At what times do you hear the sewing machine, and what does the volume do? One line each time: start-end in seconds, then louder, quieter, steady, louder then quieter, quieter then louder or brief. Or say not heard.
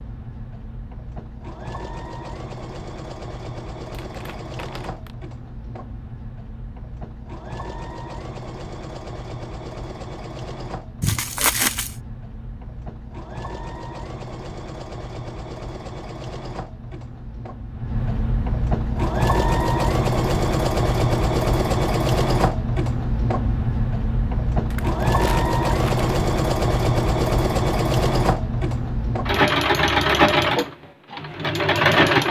0.0-32.2 louder.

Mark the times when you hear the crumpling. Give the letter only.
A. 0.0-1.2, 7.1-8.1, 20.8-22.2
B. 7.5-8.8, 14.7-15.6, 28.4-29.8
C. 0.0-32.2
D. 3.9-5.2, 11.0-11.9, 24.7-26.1
D.